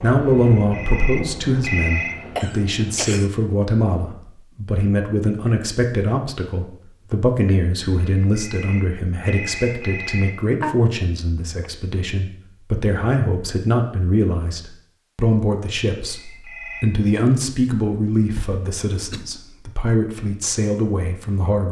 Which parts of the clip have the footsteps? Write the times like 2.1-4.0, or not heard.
not heard.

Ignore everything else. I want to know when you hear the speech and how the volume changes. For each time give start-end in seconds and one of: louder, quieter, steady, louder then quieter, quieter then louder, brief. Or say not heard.
0.0-21.6 steady.